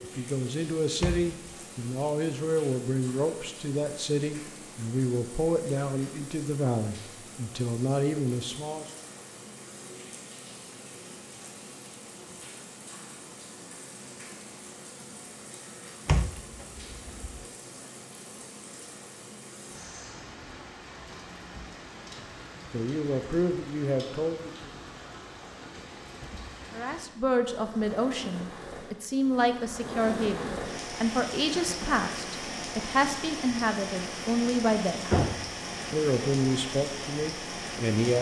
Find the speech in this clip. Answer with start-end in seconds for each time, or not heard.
0.0-8.8, 22.7-24.7, 26.7-35.1, 35.9-38.1.